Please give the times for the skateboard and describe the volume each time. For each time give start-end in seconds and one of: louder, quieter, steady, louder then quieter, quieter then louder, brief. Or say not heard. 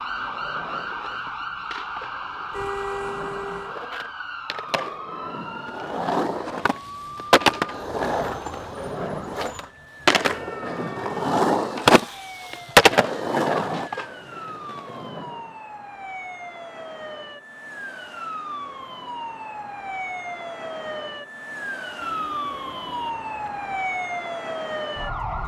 0.0-15.4 louder.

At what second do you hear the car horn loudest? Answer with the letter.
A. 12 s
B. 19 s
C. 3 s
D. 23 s
C.